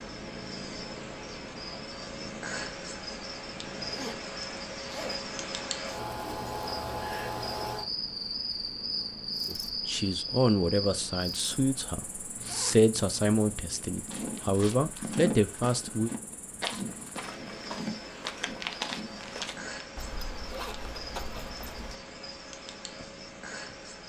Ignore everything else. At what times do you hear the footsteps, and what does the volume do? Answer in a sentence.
The footsteps can be heard from 13.9 to 19.8 s, getting quieter then louder.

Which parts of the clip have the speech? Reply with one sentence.
You can hear the speech from 9.4 to 16.1 s.